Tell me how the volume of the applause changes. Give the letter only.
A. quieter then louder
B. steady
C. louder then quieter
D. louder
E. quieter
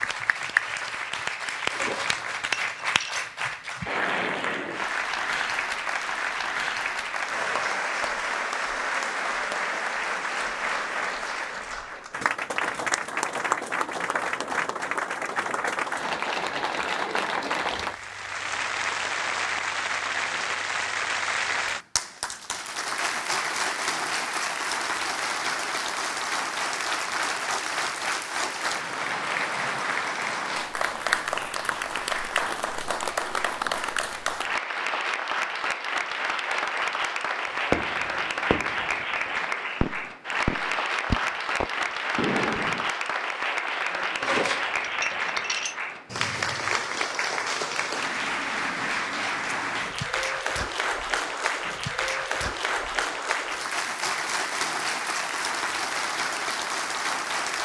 B.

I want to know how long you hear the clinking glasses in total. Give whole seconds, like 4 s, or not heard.
3 s.